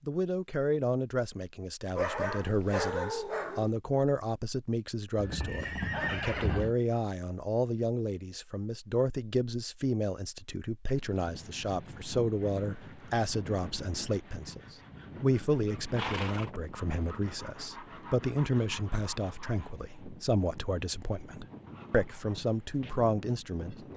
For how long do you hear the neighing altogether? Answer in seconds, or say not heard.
3 s.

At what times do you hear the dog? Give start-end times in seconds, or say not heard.
1.9-3.7.